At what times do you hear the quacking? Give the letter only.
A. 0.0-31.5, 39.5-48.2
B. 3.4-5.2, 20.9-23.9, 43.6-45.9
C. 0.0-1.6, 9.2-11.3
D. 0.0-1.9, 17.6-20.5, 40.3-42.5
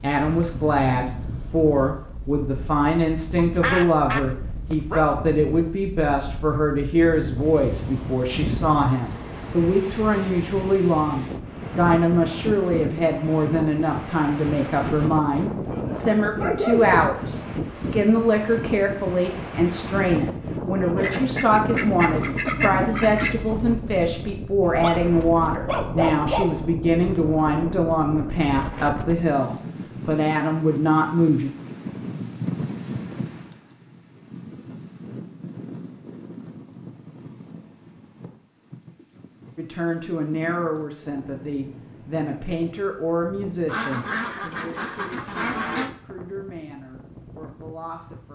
B.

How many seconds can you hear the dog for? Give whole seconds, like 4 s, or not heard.
4 s.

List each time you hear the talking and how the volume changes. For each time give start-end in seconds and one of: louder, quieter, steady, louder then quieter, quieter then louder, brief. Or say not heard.
0.0-31.5 steady
39.5-48.2 quieter.